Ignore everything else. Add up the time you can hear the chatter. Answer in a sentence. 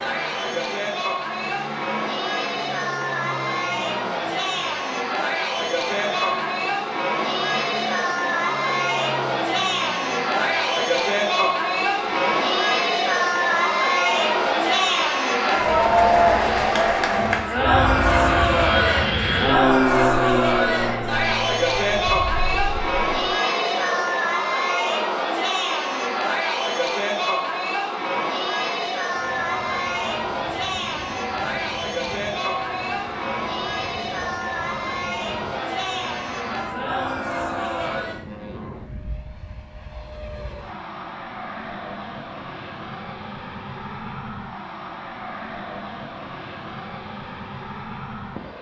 The chatter can be heard for 38 seconds in total.